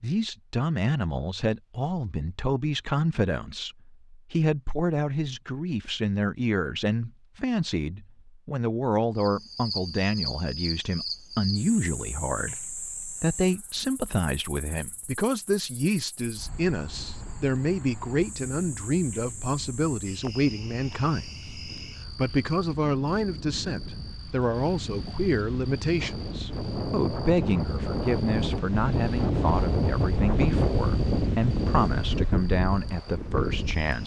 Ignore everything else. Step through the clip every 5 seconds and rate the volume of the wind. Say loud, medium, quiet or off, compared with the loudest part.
off, off, off, quiet, quiet, loud, loud.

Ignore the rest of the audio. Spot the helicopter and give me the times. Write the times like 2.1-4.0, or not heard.
not heard.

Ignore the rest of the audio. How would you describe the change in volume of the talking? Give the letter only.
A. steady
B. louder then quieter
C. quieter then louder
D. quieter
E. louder
A.